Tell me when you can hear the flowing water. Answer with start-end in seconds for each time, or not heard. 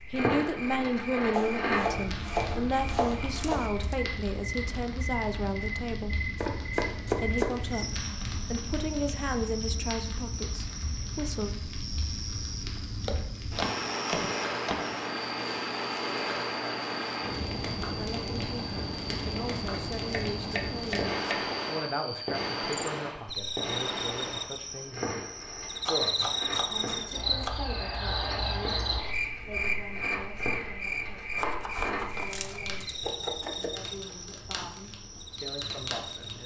not heard.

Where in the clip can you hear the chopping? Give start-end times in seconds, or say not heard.
1.3-3.7, 6.3-7.8, 13.0-14.8, 19.9-21.4, 25.9-27.6, 31.4-34.1.